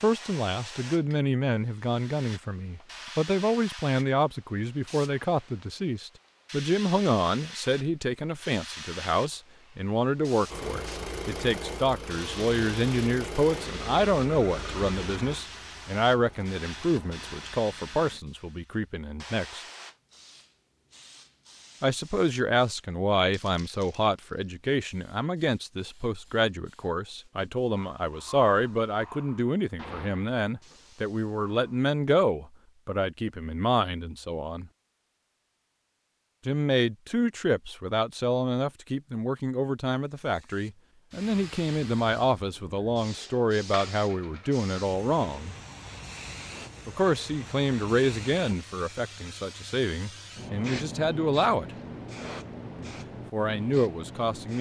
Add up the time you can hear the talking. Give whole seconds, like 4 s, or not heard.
48 s.